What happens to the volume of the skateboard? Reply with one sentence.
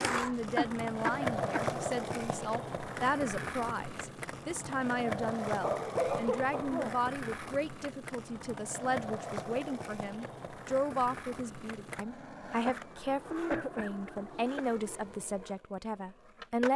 The loudness of the skateboard goes down.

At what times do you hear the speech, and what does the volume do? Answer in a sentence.
You can hear the speech from 0.0 to 16.7 s, at a steady volume.